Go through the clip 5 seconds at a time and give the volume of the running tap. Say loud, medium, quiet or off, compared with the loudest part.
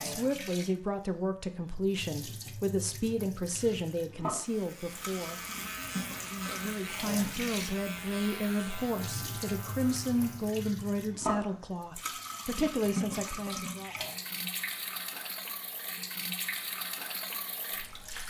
medium, loud, loud, loud.